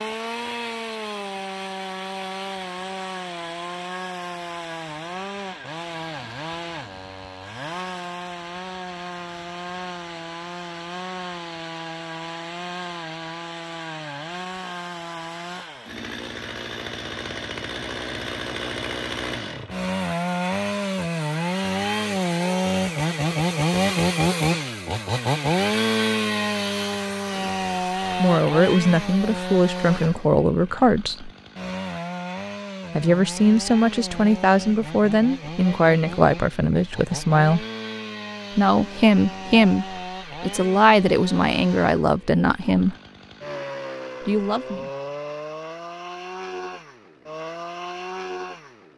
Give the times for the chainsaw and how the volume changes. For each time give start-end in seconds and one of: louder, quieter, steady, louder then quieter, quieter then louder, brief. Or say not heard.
0.0-48.9 louder then quieter.